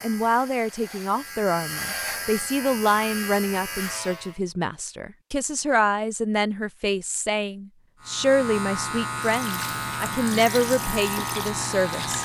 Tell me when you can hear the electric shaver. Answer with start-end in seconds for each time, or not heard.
0.0-4.4, 8.0-12.2.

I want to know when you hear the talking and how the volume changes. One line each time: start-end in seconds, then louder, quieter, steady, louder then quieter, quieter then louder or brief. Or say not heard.
0.0-12.2 steady.